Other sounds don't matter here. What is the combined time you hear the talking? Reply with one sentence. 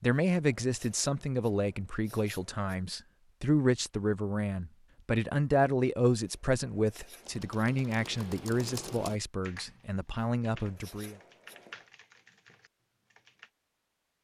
The talking can be heard for 11 seconds in total.